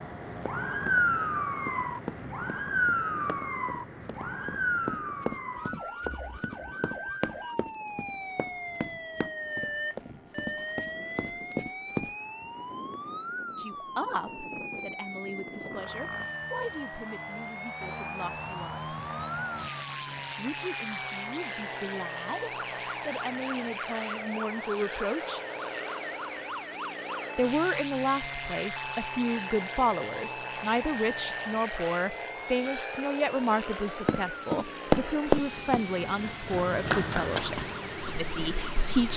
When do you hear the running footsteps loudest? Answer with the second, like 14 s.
35 s.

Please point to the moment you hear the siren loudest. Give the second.
1 s.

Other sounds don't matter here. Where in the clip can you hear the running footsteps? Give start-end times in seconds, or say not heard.
0.4-12.1, 34.0-39.1.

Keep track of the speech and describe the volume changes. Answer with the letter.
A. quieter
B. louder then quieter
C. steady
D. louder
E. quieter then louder
D.